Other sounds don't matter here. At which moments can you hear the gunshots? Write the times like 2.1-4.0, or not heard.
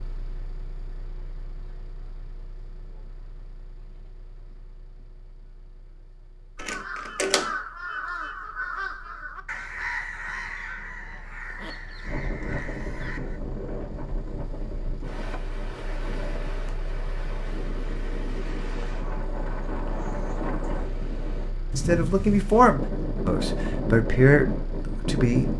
not heard.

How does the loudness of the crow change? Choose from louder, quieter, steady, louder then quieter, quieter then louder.
quieter.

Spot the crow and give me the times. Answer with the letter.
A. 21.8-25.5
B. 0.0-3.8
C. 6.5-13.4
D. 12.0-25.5
C.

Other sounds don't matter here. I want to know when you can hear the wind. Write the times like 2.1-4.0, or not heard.
12.0-25.5.